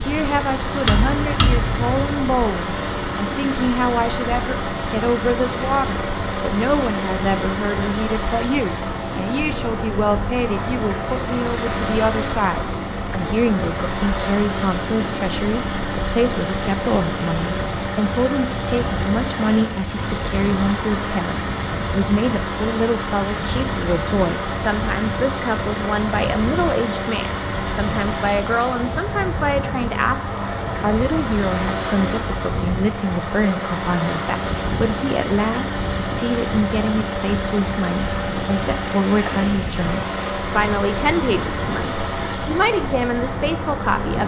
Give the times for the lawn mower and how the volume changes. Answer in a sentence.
The lawn mower can be heard from 0.0 to 44.2 s, at a steady volume.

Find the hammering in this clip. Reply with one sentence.
The hammering can be heard from 0.8 to 2.4 s.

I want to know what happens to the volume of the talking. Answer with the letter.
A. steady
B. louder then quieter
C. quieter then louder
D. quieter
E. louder
A.